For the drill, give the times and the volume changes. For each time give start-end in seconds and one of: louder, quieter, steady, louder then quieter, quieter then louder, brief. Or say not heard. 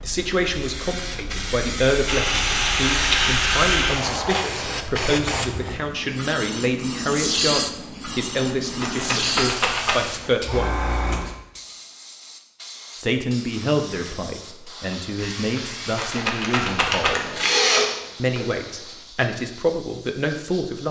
2.0-4.5 brief
13.8-18.9 louder.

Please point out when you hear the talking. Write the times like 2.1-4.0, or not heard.
0.0-10.9, 12.9-17.4, 18.1-20.8.